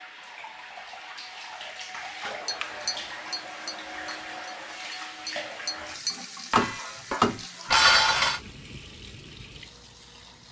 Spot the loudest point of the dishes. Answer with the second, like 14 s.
8 s.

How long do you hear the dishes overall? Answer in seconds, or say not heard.
2 s.